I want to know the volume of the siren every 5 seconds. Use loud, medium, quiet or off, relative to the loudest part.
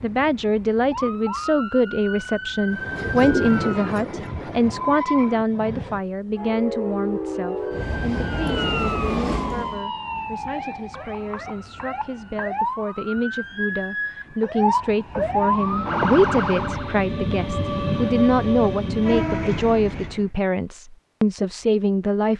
medium, medium, medium, loud, off.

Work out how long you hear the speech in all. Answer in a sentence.
You can hear the speech for 22 seconds altogether.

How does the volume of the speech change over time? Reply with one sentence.
The volume of the speech goes down, then up.